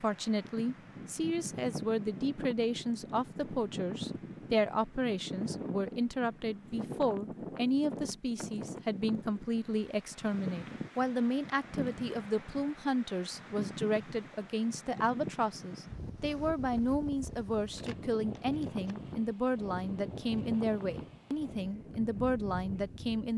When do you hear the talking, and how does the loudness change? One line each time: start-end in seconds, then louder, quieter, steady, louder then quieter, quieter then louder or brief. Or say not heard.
0.0-23.3 steady.